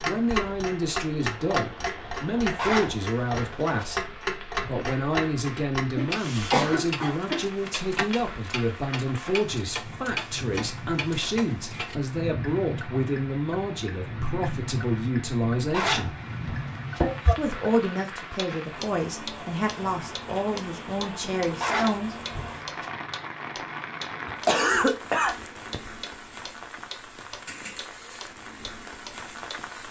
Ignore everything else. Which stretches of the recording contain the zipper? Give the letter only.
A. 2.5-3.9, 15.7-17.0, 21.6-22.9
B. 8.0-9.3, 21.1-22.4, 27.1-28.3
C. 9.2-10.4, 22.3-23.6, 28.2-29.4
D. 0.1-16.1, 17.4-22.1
A.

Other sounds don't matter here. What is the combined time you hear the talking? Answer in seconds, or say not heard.
21 s.